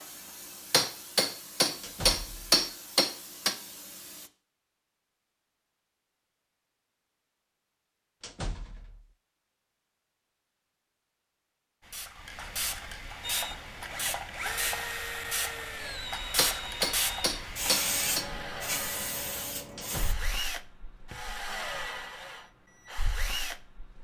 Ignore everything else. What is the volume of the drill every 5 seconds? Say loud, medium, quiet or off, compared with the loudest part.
off, off, loud, loud, loud.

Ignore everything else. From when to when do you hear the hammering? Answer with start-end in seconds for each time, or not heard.
0.7-3.5, 16.4-18.2.